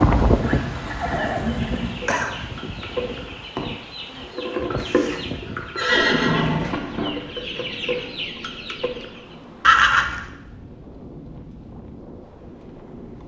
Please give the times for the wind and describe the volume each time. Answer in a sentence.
You can hear the wind from 0.0 to 13.2 s, getting quieter.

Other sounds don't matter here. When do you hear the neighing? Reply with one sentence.
You can hear the neighing from 0.3 to 2.3 s, from 4.8 to 6.7 s and from 9.6 to 10.2 s.